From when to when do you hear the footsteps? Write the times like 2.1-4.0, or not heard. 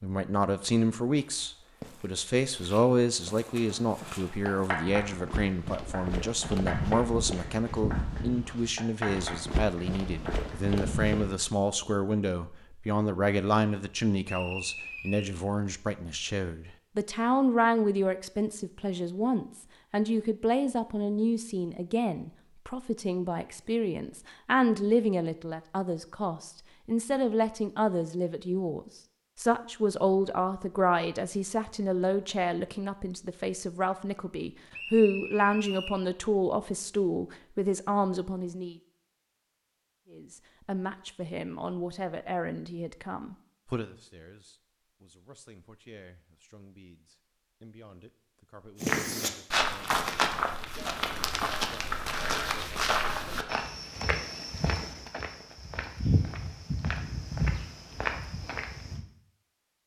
1.1-11.3, 48.8-59.0.